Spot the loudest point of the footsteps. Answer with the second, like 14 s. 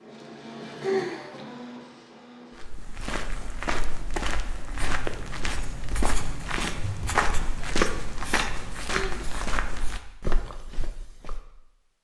8 s.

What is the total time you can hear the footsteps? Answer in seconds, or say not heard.
9 s.